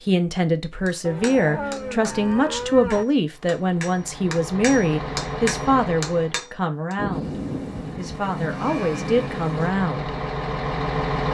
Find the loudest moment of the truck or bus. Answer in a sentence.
The loudest moment of the truck or bus is at 11 seconds.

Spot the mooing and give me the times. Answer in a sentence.
The mooing can be heard from 1.0 to 3.0 s and from 7.0 to 9.2 s.